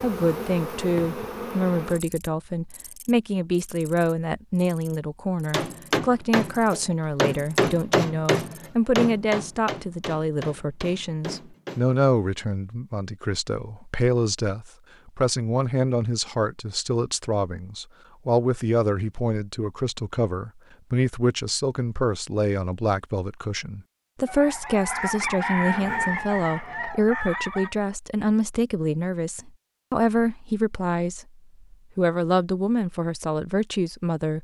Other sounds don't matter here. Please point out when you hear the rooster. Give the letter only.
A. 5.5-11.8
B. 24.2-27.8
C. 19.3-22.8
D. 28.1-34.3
B.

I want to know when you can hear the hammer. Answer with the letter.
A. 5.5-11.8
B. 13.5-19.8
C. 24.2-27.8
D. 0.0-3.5
A.